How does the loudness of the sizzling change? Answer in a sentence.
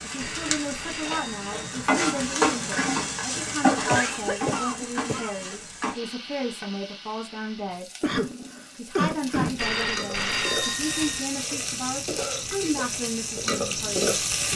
The volume of the sizzling goes down, then up.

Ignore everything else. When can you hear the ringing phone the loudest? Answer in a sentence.
The loudest moment of the ringing phone is at 10 seconds.